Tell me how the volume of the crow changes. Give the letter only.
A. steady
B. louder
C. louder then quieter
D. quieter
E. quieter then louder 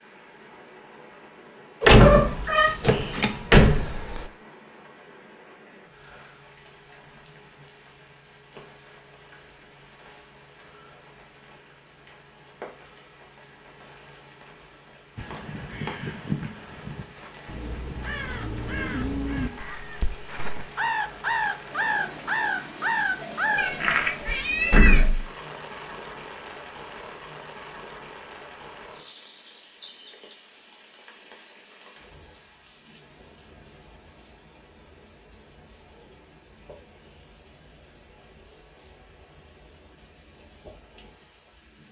B.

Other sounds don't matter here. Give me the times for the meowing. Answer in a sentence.
The meowing can be heard from 1.8 to 2.7 s and from 23.6 to 25.1 s.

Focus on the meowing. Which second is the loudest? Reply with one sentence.
The loudest moment of the meowing is at 2 seconds.